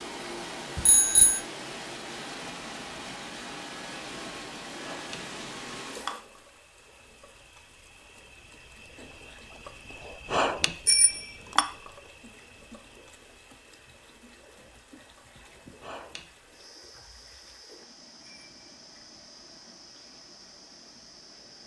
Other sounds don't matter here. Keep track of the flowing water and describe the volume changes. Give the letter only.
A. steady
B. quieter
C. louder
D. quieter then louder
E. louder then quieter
B.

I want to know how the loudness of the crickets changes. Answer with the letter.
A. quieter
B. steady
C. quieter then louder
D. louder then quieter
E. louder
D.